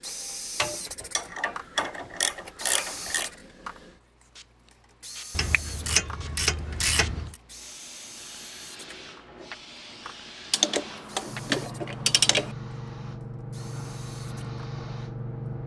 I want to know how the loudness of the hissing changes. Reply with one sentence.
The loudness of the hissing goes up.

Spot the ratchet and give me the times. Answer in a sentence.
You can hear the ratchet from 0.6 to 3.3 s, from 5.3 to 7.3 s and from 10.5 to 12.6 s.